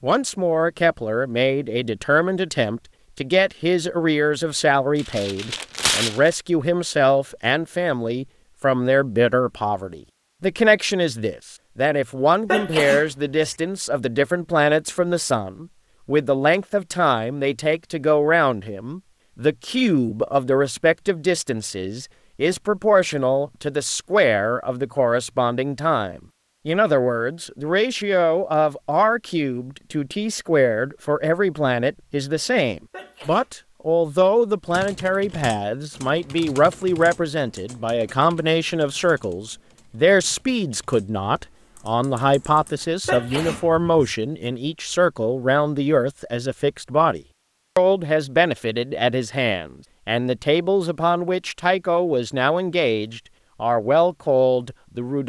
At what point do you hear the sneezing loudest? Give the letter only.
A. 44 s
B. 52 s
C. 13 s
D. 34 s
C.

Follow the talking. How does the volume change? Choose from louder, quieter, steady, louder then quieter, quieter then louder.
steady.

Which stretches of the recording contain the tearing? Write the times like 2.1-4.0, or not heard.
5.0-6.3.